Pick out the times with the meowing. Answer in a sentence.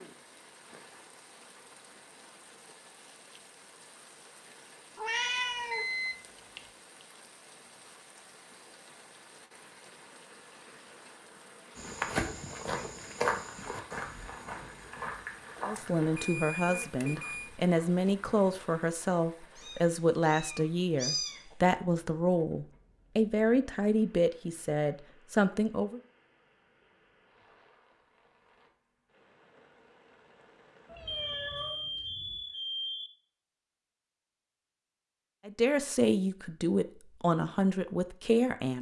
The meowing can be heard from 5.0 to 5.8 s, from 19.6 to 21.6 s and from 30.9 to 32.4 s.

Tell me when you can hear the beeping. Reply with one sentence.
You can hear the beeping from 5.7 to 6.6 s, from 15.8 to 17.5 s and from 31.1 to 33.1 s.